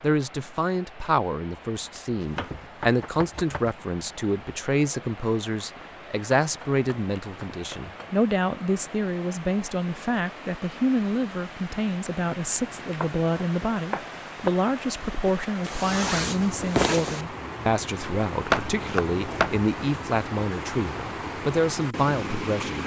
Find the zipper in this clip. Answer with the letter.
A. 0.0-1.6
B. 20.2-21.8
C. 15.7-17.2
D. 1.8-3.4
C.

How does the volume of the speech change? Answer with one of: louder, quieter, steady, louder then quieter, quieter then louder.
steady.